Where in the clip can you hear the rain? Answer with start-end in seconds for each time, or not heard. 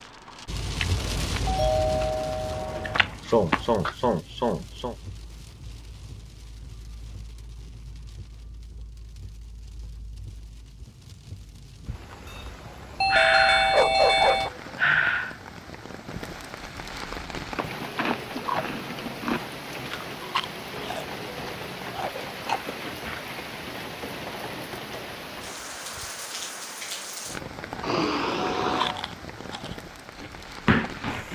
0.0-31.3.